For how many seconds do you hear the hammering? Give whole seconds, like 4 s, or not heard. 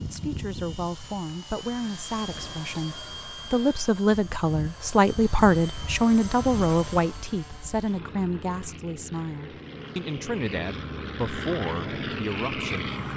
not heard.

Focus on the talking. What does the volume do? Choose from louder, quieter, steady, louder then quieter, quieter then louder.
louder then quieter.